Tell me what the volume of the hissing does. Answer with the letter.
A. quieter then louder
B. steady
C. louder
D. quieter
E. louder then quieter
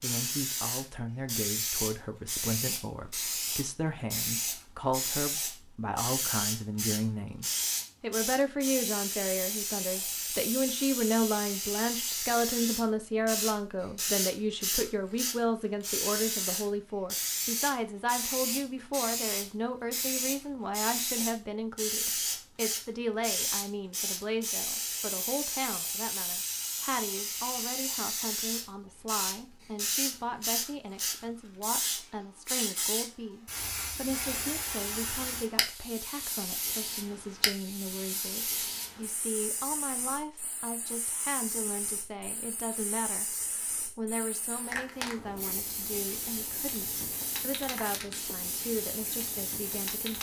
D.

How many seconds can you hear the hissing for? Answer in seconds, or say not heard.
50 s.